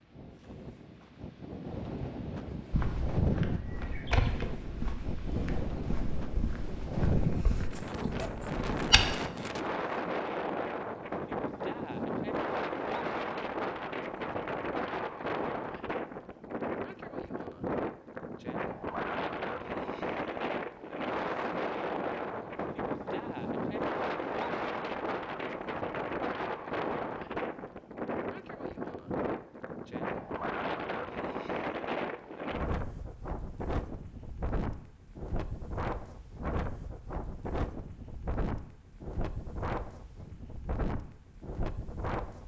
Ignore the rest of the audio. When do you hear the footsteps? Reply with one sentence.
The footsteps can be heard from 2.7 to 9.2 s.